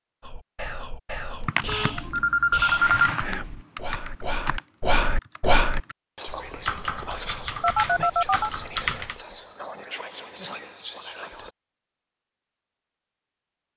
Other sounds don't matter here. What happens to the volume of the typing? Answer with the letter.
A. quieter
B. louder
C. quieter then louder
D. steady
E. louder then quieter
C.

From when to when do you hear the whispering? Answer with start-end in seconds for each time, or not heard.
0.2-11.5.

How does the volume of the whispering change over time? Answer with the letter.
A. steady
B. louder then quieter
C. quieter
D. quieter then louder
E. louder
B.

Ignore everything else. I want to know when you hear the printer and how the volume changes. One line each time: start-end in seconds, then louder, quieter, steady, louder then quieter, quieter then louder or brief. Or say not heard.
not heard.